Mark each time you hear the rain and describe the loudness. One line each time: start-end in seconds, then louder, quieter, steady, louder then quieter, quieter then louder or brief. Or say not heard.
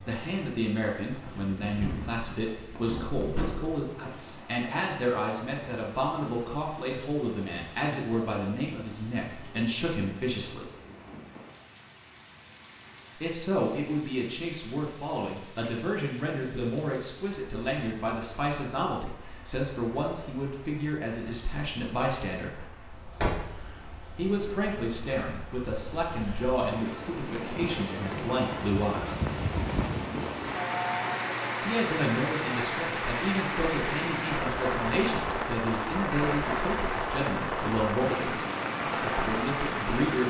0.0-40.2 louder.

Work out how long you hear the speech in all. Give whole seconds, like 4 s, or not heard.
34 s.